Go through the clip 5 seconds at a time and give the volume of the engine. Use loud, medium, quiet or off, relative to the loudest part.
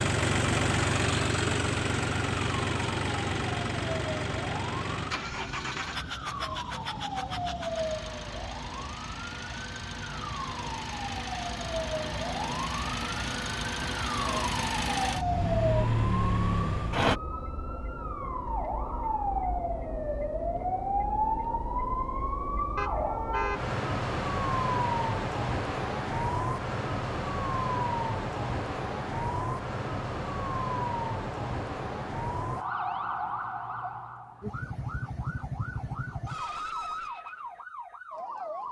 loud, medium, medium, loud, off, off, off, off.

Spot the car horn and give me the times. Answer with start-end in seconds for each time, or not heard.
22.8-23.8.